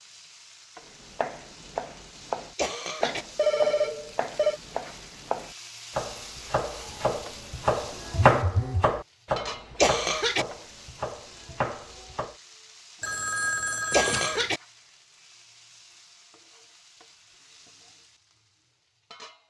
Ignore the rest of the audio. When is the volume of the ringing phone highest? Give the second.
4 s.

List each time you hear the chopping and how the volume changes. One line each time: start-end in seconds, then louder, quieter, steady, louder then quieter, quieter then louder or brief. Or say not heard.
1.0-12.3 louder then quieter.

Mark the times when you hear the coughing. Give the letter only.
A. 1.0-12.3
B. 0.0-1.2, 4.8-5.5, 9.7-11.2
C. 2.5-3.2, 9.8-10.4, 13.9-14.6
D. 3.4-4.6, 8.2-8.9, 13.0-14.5
C.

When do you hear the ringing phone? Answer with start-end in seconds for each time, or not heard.
3.4-4.6, 8.2-8.9, 13.0-14.5.